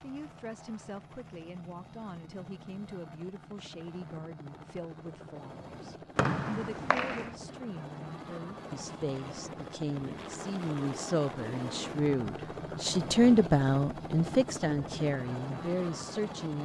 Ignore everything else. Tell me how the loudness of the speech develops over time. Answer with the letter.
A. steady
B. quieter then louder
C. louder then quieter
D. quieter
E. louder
E.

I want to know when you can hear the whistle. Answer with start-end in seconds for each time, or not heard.
6.2-7.3.